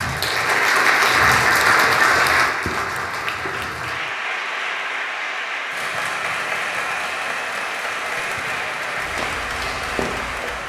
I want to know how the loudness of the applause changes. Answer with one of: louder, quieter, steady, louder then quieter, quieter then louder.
quieter.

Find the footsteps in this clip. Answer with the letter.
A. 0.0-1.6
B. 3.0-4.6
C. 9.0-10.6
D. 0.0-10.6
C.